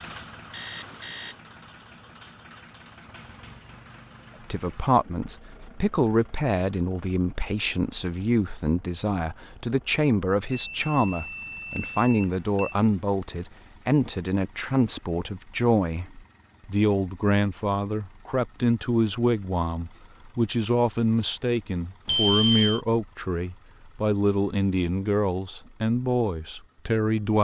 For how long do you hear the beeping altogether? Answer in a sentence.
You can hear the beeping for 4 seconds altogether.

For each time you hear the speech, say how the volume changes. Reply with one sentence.
You can hear the speech from 4.5 to 27.4 s, at a steady volume.